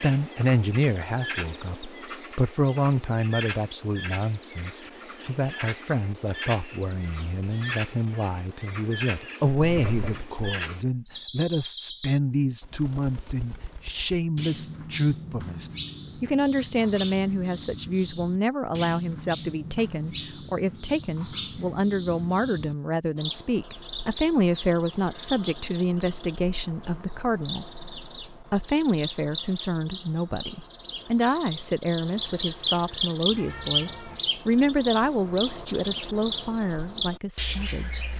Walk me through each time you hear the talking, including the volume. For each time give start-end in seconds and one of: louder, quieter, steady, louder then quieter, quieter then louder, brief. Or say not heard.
0.0-38.0 steady.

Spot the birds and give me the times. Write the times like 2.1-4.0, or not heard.
0.0-38.1.